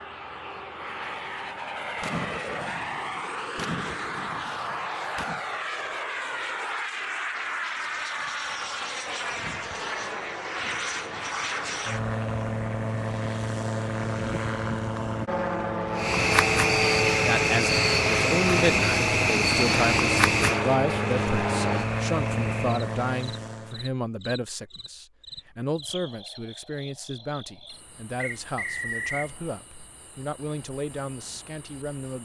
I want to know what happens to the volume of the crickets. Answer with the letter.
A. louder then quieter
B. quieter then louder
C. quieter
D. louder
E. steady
C.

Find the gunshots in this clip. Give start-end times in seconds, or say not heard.
2.0-5.4.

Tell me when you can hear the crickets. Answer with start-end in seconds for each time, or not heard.
15.9-32.2.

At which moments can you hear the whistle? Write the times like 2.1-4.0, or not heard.
28.1-29.3.